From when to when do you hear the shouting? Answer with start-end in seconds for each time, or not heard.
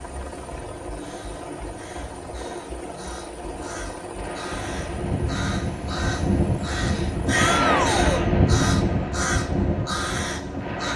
7.3-8.3.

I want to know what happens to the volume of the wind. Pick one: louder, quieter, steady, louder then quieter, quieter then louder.
louder then quieter.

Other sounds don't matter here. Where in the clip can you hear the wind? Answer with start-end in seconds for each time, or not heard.
4.2-10.9.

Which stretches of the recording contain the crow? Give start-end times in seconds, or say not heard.
0.9-10.9.